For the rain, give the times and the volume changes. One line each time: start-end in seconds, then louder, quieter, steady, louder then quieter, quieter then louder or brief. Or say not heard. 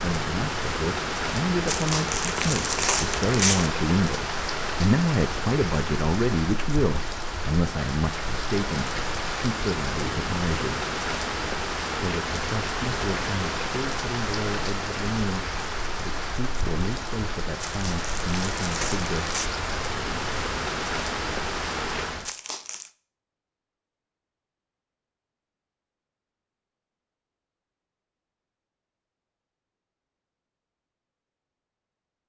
0.0-22.3 steady.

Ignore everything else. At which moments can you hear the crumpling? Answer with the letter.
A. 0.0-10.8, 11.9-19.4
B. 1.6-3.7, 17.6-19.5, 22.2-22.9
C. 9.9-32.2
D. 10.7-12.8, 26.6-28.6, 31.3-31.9
B.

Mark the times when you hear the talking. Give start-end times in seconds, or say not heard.
0.0-10.8, 11.9-19.4.